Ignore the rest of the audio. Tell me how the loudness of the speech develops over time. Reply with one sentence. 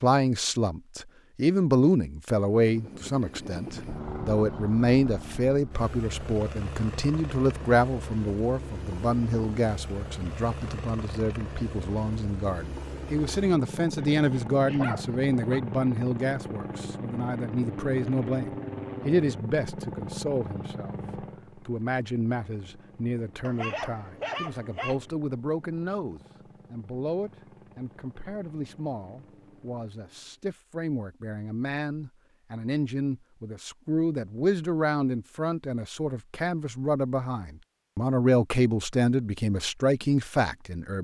The loudness of the speech goes down, then up.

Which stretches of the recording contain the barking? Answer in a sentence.
You can hear the barking from 13.9 to 15.6 s and from 23.4 to 25.0 s.